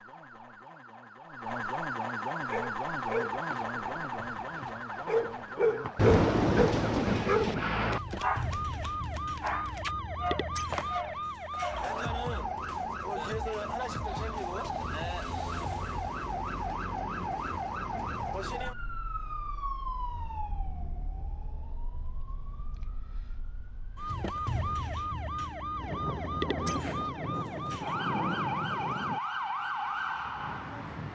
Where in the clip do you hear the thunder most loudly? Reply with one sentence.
The loudest moment of the thunder is at 6 seconds.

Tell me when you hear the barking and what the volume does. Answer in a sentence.
You can hear the barking from 2.4 to 11.9 s, getting louder then quieter.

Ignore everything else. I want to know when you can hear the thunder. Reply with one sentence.
The thunder can be heard from 6.0 to 8.0 s and from 25.8 to 29.2 s.